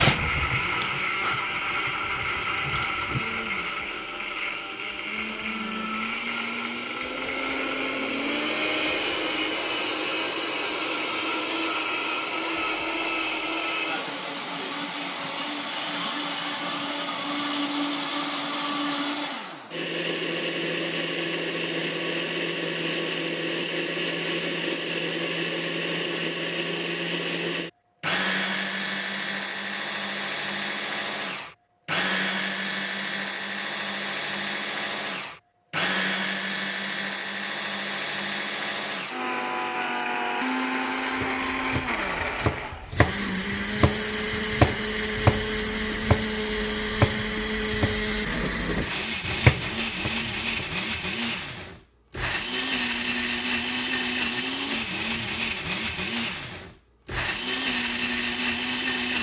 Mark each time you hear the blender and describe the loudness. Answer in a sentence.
The blender can be heard from 0.0 to 59.1 s, at a steady volume.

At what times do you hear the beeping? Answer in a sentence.
You can't hear the beeping here.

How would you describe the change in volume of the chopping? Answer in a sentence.
The volume of the chopping goes up.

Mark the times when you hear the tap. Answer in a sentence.
You can hear the tap from 0.0 to 3.5 s.